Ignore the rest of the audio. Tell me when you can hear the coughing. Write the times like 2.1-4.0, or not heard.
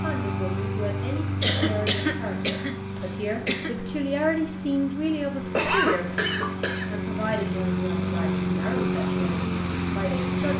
1.4-3.7, 5.5-7.3.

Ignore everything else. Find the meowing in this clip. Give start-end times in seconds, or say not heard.
not heard.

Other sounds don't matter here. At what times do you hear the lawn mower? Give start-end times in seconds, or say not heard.
0.0-10.5.